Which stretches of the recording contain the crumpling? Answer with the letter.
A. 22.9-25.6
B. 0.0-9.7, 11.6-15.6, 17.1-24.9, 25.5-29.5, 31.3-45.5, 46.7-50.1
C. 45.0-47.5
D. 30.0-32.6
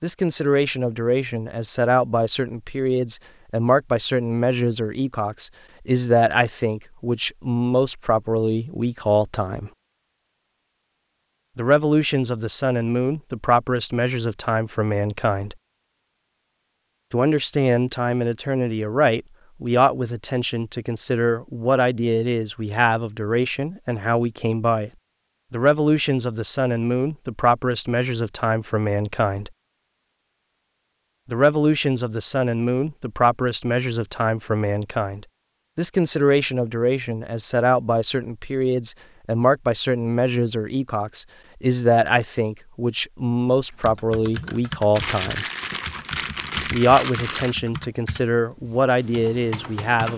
C.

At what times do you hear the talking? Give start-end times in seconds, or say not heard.
0.0-9.7, 11.6-15.6, 17.1-24.9, 25.5-29.5, 31.3-45.5, 46.7-50.1.